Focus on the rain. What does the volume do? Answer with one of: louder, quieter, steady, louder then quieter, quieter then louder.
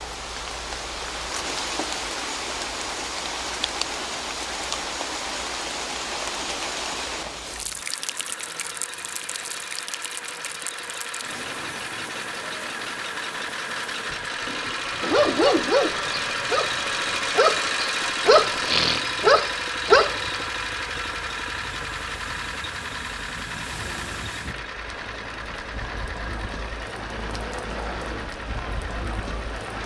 quieter then louder.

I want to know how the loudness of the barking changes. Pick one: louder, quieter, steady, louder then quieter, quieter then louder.
quieter then louder.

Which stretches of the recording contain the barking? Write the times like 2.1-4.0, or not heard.
15.0-20.4.